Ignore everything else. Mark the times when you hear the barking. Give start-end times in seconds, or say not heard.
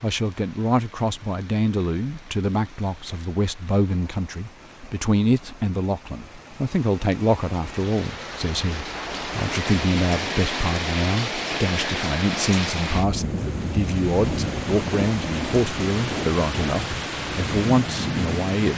not heard.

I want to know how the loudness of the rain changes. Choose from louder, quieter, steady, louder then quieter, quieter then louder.
louder.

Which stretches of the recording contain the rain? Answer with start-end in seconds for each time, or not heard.
0.0-18.7.